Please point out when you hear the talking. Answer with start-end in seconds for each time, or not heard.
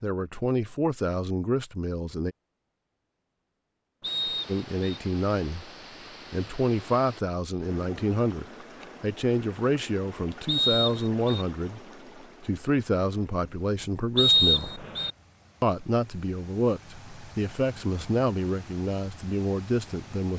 0.0-2.4, 4.5-5.7, 6.3-11.8, 12.4-14.7, 15.6-20.3.